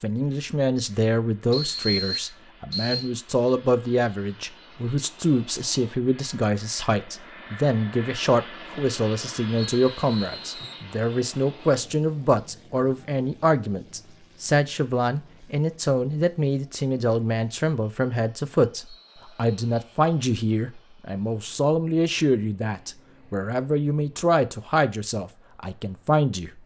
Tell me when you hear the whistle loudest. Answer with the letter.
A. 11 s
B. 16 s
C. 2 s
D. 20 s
C.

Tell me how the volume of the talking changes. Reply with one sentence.
The loudness of the talking stays about the same.